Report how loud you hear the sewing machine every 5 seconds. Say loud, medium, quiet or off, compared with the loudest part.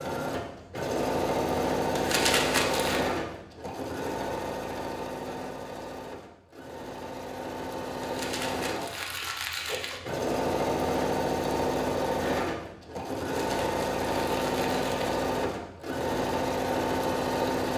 loud, medium, loud, loud.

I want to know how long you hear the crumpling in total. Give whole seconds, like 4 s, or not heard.
5 s.